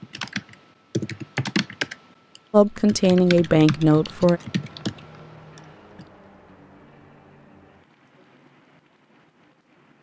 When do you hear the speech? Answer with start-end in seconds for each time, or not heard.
2.5-4.4.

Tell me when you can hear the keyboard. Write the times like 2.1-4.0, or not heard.
0.0-6.0.